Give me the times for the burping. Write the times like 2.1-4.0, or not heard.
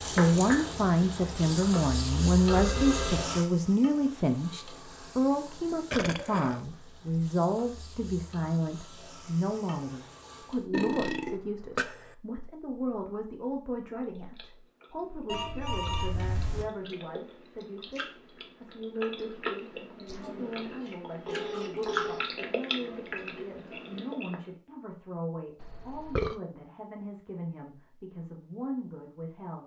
5.9-6.6, 10.7-12.2, 25.6-26.4.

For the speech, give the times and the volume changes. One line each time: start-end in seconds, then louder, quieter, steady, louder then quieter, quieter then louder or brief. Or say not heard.
0.0-29.6 quieter.